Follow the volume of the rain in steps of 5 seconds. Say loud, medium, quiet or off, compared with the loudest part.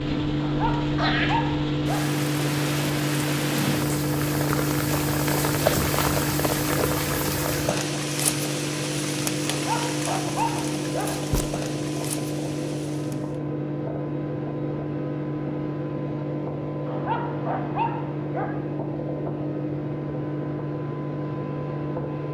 loud, loud, medium, off, off.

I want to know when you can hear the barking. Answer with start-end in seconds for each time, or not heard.
0.4-2.1, 9.4-11.2, 16.9-18.6.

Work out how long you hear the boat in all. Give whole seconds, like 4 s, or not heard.
22 s.